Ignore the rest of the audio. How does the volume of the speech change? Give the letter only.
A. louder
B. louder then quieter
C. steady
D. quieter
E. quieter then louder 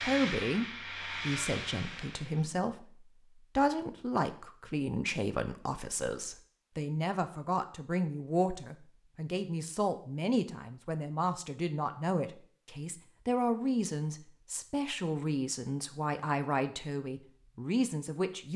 C.